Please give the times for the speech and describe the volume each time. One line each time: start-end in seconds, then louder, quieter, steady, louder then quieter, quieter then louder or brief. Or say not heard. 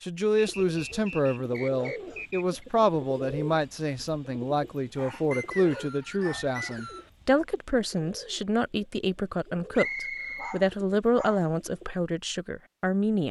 0.0-13.2 steady.